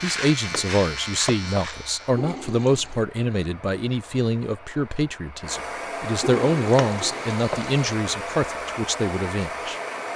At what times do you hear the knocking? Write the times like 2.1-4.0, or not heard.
0.5-1.6, 6.8-7.6.